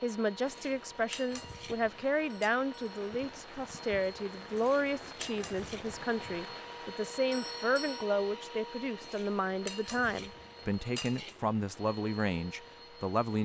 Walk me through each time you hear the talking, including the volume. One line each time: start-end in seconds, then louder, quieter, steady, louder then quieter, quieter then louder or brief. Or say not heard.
0.0-13.4 steady.